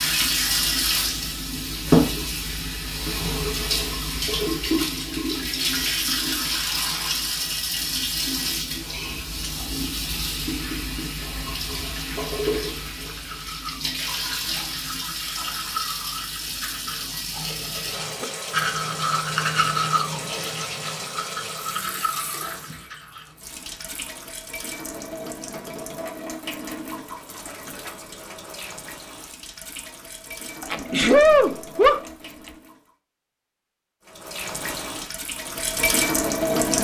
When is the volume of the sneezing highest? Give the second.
31 s.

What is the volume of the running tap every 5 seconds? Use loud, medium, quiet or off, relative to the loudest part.
loud, loud, medium, medium, quiet, quiet, quiet, loud.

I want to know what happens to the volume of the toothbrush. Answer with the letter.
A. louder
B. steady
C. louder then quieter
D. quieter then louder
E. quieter
C.